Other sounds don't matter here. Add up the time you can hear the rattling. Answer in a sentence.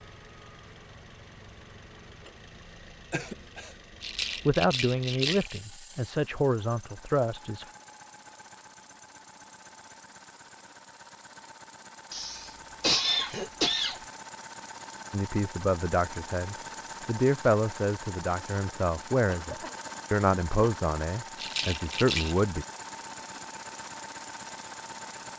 You can hear the rattling for 3 seconds altogether.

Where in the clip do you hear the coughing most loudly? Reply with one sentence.
The volume of the coughing peaks at 13 seconds.